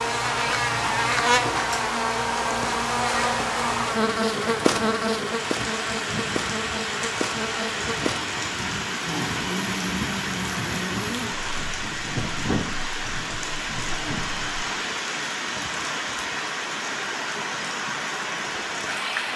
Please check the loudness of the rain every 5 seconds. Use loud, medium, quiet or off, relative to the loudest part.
medium, loud, loud, loud.